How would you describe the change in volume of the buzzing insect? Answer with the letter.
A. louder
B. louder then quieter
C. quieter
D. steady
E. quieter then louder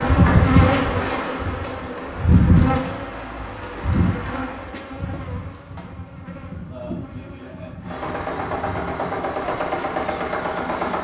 C.